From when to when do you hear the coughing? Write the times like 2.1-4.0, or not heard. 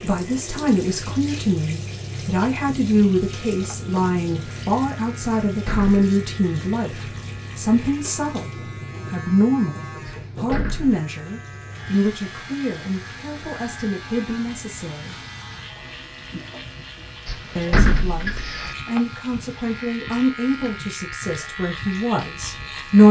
not heard.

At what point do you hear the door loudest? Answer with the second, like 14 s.
18 s.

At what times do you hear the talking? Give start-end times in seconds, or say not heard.
0.0-15.2, 17.6-23.0.